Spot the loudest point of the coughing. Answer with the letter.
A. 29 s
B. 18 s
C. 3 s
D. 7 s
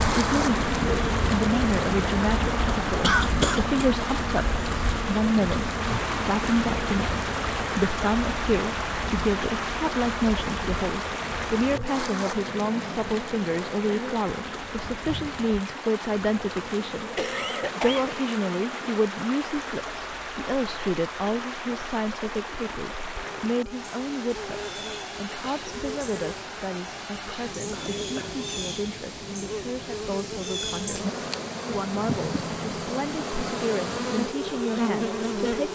C.